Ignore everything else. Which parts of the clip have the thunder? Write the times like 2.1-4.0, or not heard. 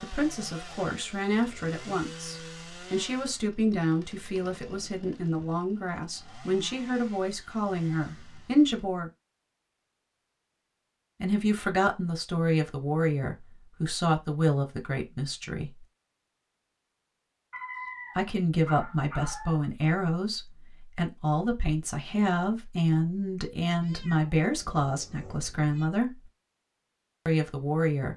not heard.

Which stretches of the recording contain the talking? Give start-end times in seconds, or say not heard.
0.0-9.1, 11.2-15.8, 18.1-26.2, 27.2-28.1.